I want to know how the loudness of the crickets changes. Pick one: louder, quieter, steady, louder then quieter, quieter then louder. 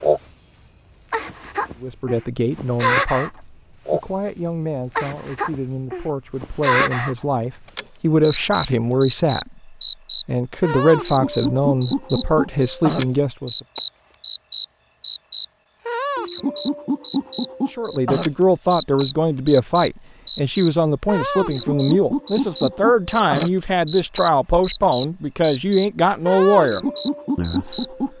steady.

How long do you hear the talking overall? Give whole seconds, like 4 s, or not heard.
22 s.